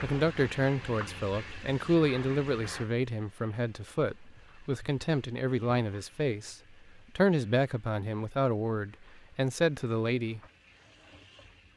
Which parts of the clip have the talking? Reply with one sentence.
You can hear the talking from 0.0 to 10.4 s.